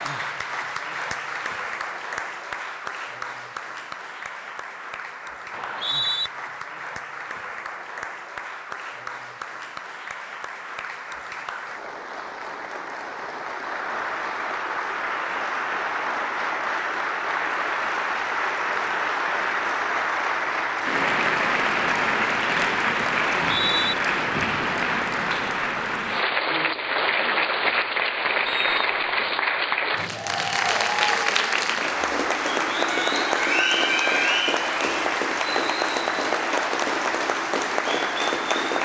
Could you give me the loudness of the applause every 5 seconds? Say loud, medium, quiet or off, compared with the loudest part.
medium, quiet, medium, loud, loud, loud, loud, loud.